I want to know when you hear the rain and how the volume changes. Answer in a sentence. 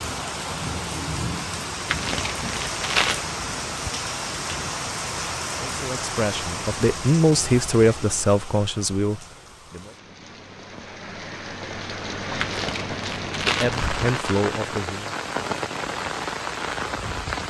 You can hear the rain from 0.0 to 17.4 s, getting quieter then louder.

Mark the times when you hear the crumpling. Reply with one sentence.
You can hear the crumpling from 1.9 to 3.3 s and from 12.3 to 14.4 s.